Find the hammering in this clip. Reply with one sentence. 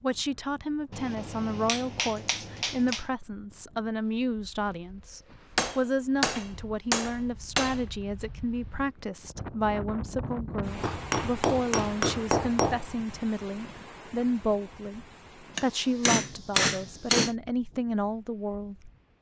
The hammering can be heard from 0.9 to 3.0 s, from 5.5 to 7.8 s, from 10.8 to 12.8 s and from 15.6 to 17.4 s.